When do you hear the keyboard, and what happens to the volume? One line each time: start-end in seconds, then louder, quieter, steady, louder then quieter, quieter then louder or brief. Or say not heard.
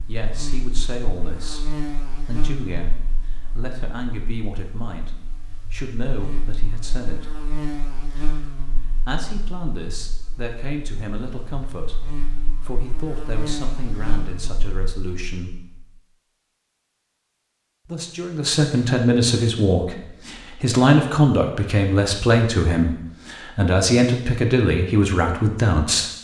not heard.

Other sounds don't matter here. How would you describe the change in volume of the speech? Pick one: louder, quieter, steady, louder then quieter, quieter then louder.
louder.